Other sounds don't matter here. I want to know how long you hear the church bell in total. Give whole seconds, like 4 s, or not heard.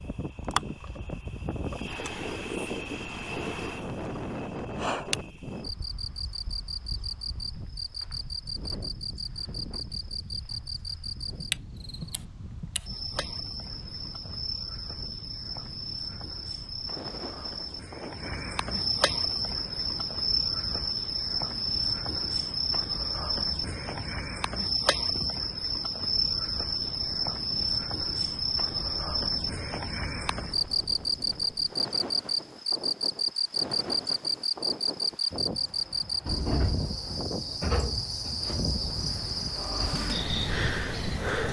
not heard.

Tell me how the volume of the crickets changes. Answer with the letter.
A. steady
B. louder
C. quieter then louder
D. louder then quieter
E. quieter
B.